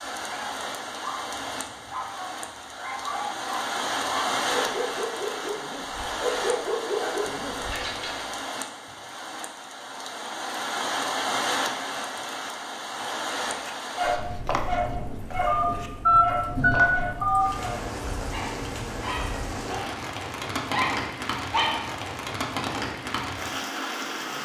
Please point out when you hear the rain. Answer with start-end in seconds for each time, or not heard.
0.0-24.4.